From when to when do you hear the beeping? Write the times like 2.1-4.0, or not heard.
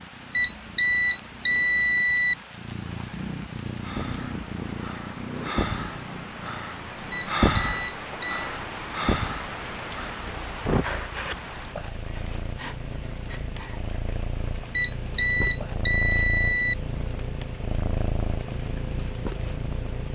0.3-2.4, 7.1-8.5, 14.8-16.8.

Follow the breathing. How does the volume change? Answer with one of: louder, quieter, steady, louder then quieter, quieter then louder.
louder then quieter.